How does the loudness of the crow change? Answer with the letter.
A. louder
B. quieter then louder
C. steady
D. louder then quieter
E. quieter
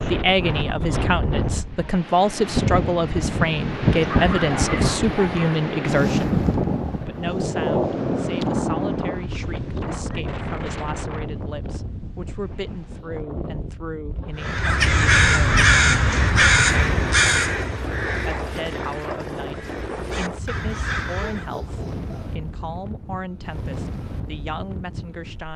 B.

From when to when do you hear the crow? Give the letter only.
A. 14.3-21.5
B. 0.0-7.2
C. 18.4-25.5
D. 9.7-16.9
A.